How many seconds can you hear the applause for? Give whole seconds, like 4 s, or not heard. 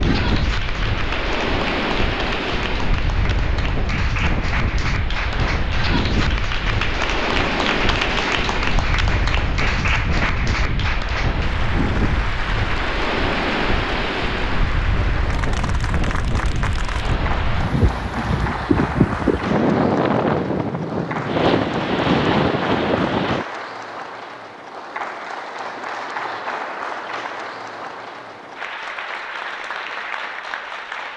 31 s.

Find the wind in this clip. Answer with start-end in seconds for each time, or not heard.
0.0-23.4.